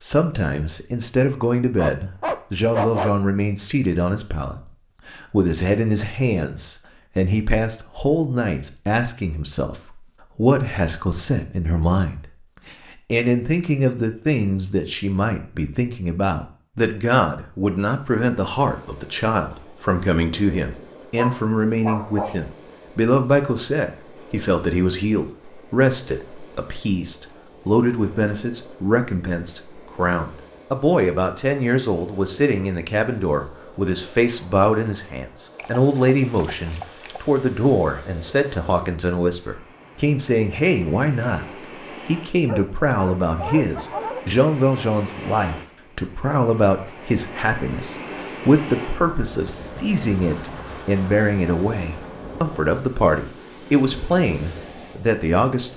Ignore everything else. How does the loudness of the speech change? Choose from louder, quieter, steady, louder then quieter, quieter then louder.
steady.